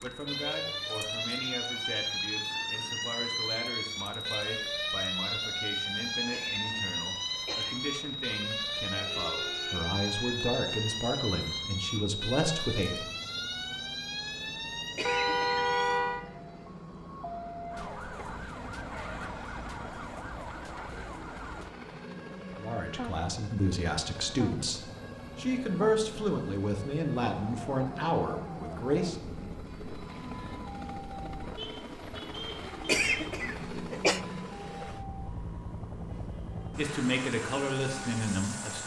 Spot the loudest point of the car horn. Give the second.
16 s.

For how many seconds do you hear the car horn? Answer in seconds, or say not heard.
4 s.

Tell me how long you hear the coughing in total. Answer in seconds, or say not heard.
3 s.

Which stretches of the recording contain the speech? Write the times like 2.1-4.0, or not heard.
0.0-13.1, 22.6-29.1, 36.8-38.8.